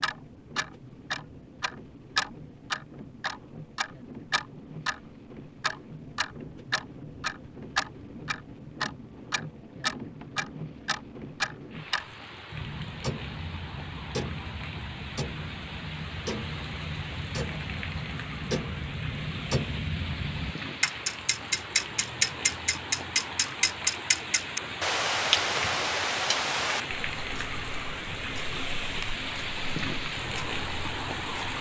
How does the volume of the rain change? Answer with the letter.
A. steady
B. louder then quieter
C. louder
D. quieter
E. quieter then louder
C.